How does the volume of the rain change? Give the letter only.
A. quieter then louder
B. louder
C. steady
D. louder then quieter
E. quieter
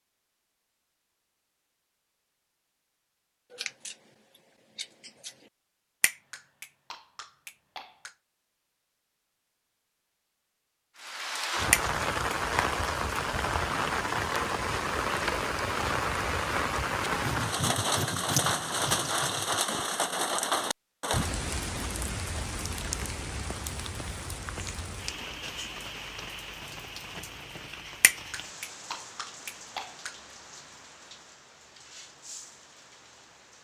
E.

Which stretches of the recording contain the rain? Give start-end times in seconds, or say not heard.
10.9-33.5.